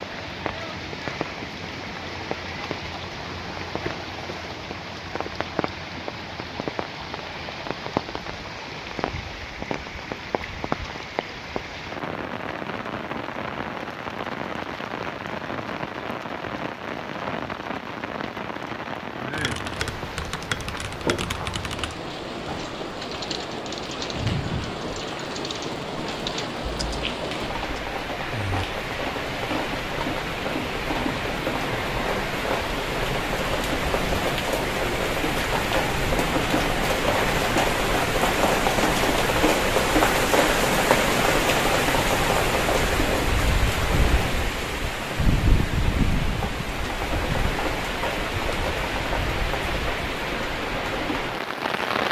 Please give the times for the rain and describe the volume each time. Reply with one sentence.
The rain can be heard from 0.0 to 52.0 s, getting louder.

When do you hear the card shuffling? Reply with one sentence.
The card shuffling can't be heard in this clip.